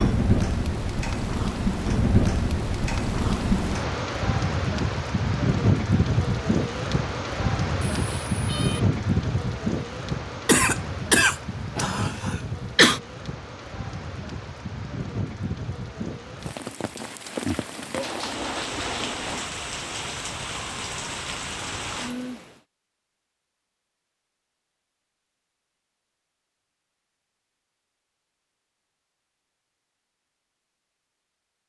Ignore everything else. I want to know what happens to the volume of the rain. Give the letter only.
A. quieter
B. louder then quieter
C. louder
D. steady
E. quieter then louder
A.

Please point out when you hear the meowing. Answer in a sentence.
The meowing can be heard from 8.0 to 8.8 s and from 17.9 to 19.6 s.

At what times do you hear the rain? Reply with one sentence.
The rain can be heard from 0.0 to 22.6 s.